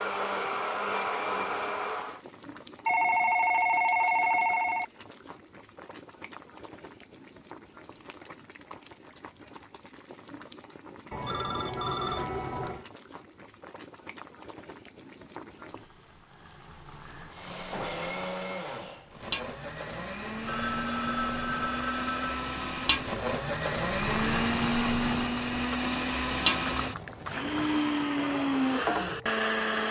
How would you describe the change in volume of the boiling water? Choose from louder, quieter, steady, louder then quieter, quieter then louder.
louder.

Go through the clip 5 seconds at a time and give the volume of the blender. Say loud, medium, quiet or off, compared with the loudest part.
loud, off, off, medium, loud, loud.